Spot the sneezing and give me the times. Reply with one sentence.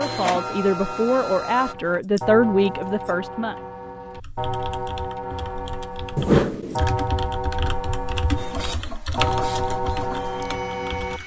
The sneezing can't be heard in this clip.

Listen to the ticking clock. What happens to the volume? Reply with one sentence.
The volume of the ticking clock goes up.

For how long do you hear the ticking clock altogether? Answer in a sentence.
You can hear the ticking clock for 11 seconds altogether.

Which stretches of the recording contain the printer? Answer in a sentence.
You can hear the printer from 0.0 to 1.8 s and from 8.3 to 11.2 s.